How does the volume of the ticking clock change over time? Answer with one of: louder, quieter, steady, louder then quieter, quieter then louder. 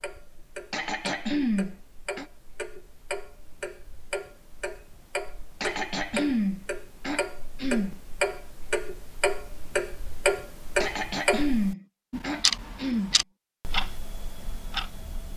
louder.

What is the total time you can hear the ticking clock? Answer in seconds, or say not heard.
15 s.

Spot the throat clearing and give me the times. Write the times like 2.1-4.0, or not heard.
0.7-2.2, 5.6-8.0, 10.8-13.2.